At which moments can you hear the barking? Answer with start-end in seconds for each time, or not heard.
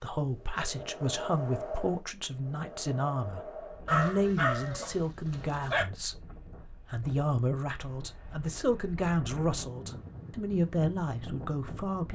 3.9-5.8.